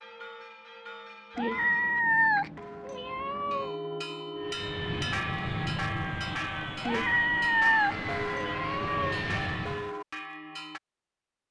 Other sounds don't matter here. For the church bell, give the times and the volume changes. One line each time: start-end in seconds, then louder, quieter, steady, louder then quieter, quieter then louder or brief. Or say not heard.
0.0-10.8 louder.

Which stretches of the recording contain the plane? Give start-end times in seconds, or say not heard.
4.3-9.9.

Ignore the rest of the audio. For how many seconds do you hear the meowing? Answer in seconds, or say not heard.
5 s.